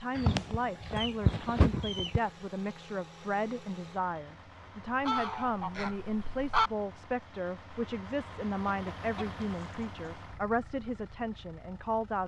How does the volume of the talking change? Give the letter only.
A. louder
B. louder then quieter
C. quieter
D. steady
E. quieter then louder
D.